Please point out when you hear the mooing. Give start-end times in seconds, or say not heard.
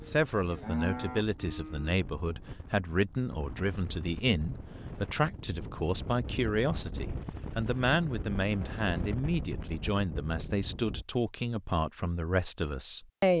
0.0-1.9.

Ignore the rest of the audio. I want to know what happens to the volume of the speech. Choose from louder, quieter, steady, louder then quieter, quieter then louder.
steady.